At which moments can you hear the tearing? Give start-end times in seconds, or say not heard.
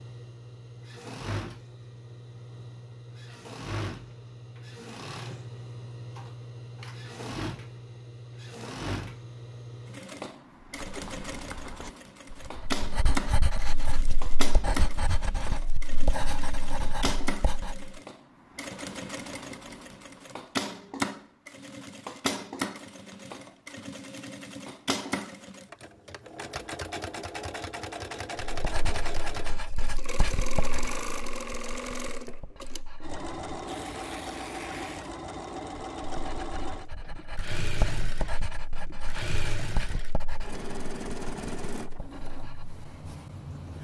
33.6-35.1.